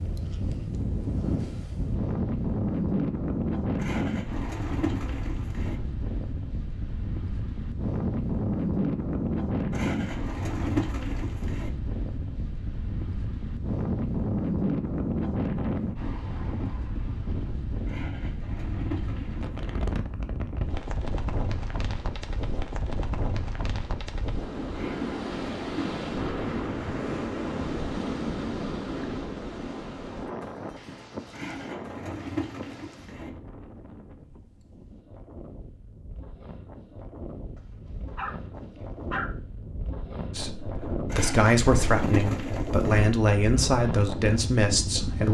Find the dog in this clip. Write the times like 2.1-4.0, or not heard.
37.5-39.3.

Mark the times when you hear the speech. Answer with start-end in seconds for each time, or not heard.
40.4-45.3.